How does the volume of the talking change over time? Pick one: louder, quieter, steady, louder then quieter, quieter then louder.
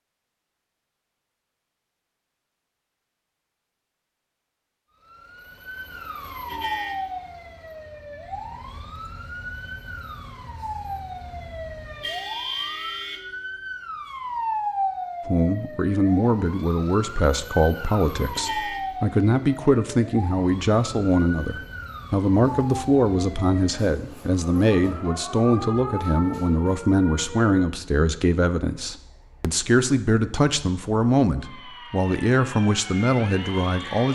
steady.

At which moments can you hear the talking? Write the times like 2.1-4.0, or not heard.
15.2-34.1.